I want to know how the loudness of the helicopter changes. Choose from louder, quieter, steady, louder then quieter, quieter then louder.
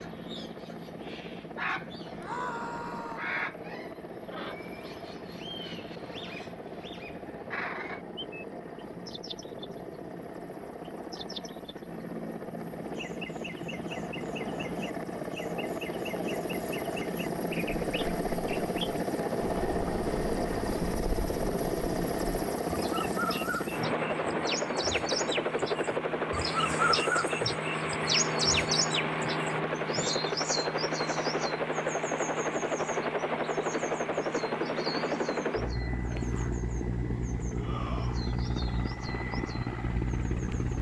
louder.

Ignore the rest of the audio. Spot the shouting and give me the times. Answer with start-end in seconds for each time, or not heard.
2.2-3.2, 37.5-38.2.